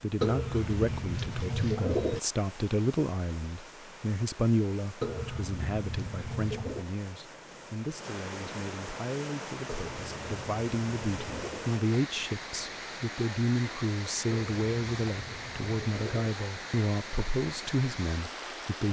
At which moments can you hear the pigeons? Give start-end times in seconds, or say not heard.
0.2-2.2, 5.0-6.8, 9.7-11.7, 14.3-16.3.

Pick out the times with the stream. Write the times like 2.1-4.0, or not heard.
0.0-18.8.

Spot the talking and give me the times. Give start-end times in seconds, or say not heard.
0.0-18.8.